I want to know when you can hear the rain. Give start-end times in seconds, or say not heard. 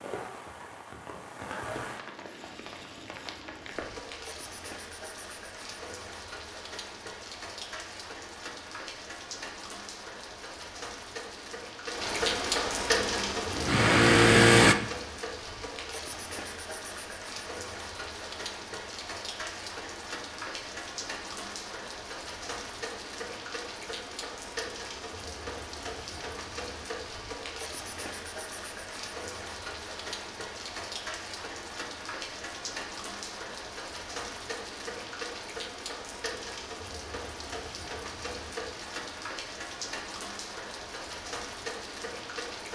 0.0-42.6.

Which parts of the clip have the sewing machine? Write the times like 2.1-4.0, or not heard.
12.9-14.8.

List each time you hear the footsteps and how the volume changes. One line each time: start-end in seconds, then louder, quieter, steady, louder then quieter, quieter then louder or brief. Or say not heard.
not heard.